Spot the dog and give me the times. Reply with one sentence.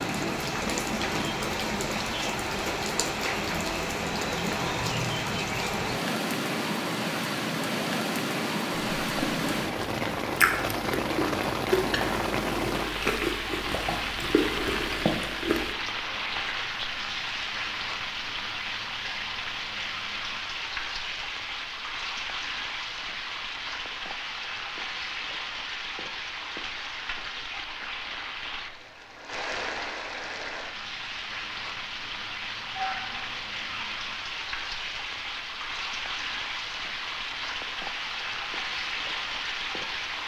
The dog can be heard from 32.7 to 33.9 s.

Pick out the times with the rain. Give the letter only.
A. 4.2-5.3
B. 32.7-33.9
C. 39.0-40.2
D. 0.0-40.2
D.